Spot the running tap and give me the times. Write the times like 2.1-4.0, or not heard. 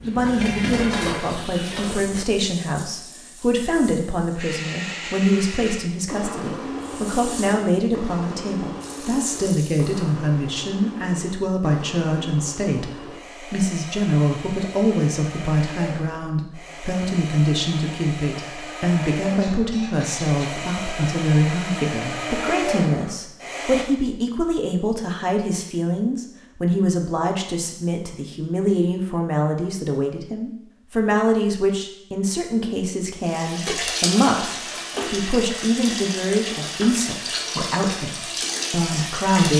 0.0-4.5, 6.8-10.0, 33.2-39.5.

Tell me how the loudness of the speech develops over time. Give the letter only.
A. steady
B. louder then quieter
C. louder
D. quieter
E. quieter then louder
A.